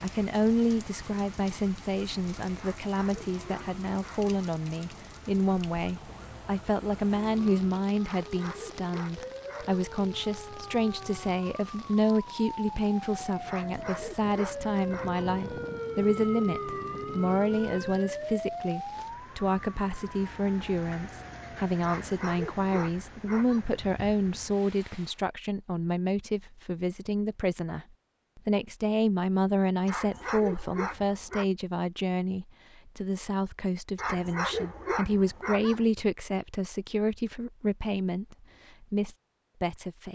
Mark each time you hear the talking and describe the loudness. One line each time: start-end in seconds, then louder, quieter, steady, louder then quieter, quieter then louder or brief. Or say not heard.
0.0-40.0 steady.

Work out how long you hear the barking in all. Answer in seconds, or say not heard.
11 s.